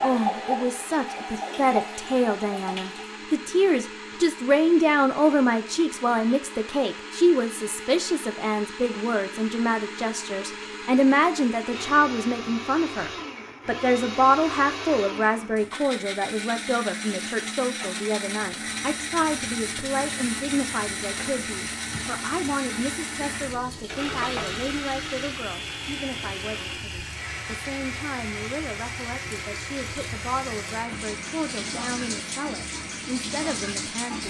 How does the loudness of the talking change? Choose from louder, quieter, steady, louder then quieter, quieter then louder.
quieter.